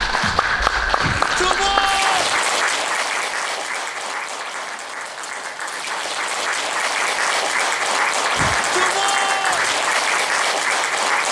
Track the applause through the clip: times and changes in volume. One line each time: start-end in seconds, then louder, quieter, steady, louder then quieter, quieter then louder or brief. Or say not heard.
0.0-11.2 quieter then louder.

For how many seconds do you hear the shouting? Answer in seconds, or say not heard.
3 s.